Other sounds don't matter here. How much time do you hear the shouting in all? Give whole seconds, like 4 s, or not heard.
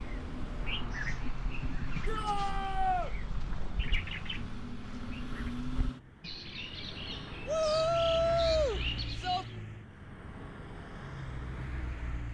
3 s.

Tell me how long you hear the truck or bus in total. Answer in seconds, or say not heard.
12 s.